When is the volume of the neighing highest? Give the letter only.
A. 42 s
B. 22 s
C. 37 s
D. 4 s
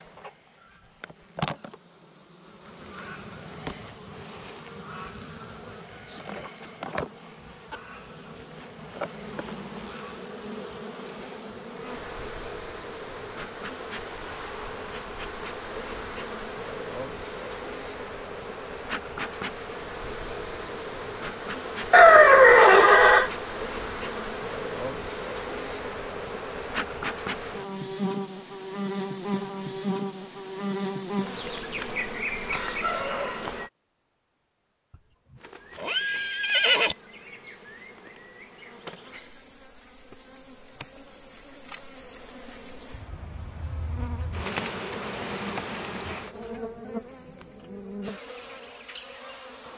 B.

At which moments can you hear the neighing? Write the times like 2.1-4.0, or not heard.
21.9-23.3, 35.8-37.0.